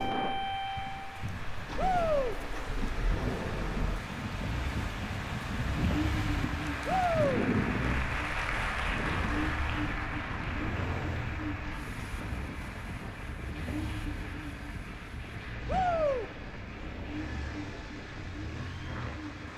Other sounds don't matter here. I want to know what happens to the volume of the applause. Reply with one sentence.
The loudness of the applause goes up, then down.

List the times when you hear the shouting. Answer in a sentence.
You can hear the shouting from 1.8 to 2.4 s, from 6.8 to 7.5 s and from 15.7 to 16.2 s.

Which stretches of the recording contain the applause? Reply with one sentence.
You can hear the applause from 0.0 to 19.5 s.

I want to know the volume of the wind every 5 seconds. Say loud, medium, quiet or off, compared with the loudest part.
loud, loud, medium, medium.